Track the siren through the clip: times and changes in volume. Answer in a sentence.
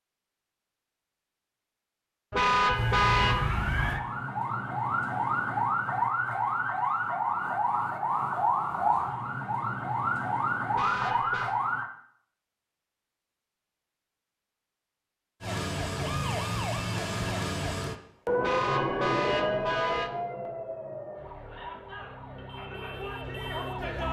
The siren can be heard from 2.7 to 11.9 s, at a steady volume; and from 15.4 to 24.0 s, getting quieter.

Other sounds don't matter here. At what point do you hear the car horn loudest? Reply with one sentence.
The loudest moment of the car horn is at 3 seconds.